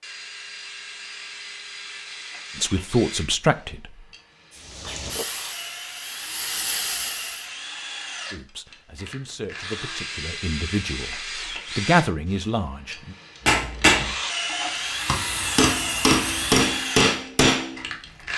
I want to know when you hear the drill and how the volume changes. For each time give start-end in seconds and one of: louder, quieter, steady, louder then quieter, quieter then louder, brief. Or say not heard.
0.0-18.3 louder.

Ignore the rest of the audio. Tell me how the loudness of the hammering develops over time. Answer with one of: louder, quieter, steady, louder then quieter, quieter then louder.
quieter then louder.